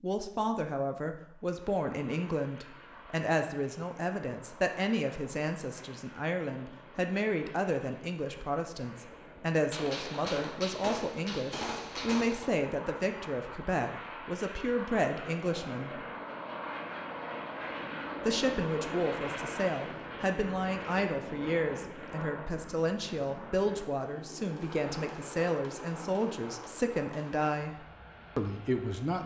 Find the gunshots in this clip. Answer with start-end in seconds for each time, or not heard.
9.7-12.5, 24.6-27.5.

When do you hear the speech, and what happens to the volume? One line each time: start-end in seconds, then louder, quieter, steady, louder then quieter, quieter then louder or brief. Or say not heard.
0.0-16.0 steady
18.2-29.2 steady.